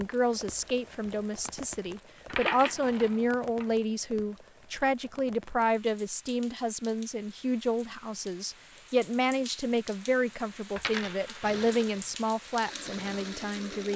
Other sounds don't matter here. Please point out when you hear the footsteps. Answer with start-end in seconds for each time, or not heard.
not heard.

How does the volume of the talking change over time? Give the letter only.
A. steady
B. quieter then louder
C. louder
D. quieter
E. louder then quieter
A.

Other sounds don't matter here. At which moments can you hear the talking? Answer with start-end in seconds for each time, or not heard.
0.0-13.9.